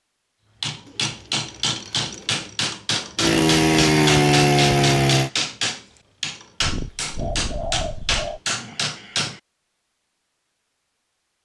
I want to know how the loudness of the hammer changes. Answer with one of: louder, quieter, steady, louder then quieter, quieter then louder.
steady.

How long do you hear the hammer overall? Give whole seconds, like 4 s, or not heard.
9 s.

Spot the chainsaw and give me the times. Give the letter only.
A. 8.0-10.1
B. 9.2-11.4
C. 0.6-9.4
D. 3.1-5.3
D.